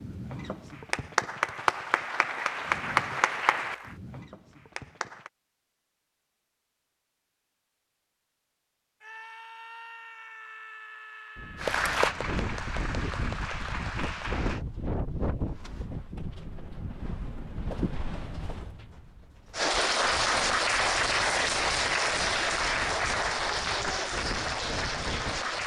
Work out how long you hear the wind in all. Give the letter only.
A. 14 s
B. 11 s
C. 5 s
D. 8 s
A.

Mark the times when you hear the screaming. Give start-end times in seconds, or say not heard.
9.0-11.8.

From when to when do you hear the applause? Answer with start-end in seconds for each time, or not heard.
0.0-5.3, 11.6-14.6, 19.6-25.6.